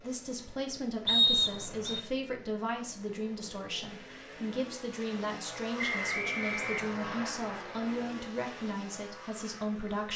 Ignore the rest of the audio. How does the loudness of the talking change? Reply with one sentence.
The volume of the talking stays about the same.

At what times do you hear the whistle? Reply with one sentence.
You can hear the whistle from 1.1 to 2.0 s and from 5.8 to 7.3 s.